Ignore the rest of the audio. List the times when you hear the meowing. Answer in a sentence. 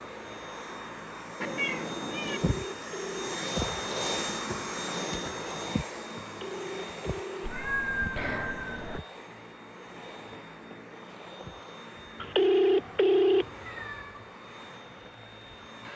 The meowing can be heard from 1.4 to 2.4 s, from 7.4 to 9.0 s and from 13.4 to 14.3 s.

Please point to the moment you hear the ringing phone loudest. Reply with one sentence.
The volume of the ringing phone peaks at 13 seconds.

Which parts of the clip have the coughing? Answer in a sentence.
You can't hear the coughing here.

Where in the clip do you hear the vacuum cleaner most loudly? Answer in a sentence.
The loudest moment of the vacuum cleaner is at 4 seconds.